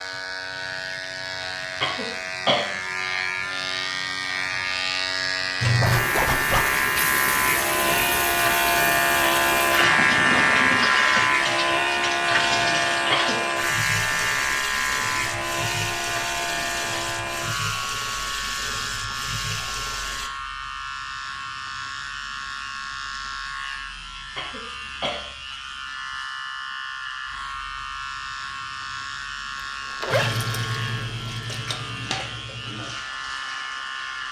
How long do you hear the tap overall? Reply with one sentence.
You can hear the tap for 19 seconds altogether.